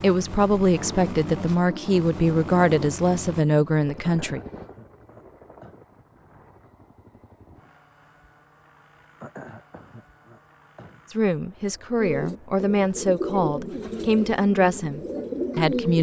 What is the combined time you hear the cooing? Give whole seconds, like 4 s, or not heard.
4 s.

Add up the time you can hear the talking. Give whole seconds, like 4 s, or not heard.
9 s.